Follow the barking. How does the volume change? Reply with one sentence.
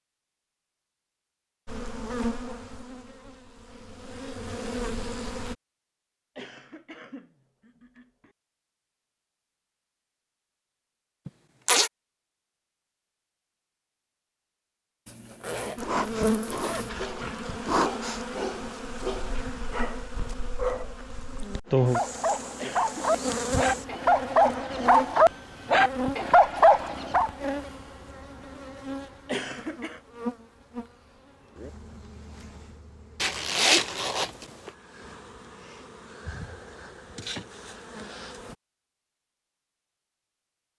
The volume of the barking goes up.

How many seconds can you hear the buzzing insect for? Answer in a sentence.
The buzzing insect can be heard for 27 seconds in total.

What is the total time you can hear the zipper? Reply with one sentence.
The zipper can be heard for 4 seconds in total.